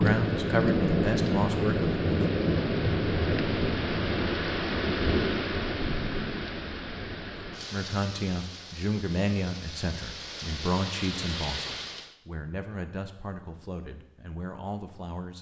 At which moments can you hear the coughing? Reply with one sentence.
You can't hear the coughing here.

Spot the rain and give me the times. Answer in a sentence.
You can hear the rain from 0.0 to 12.2 s.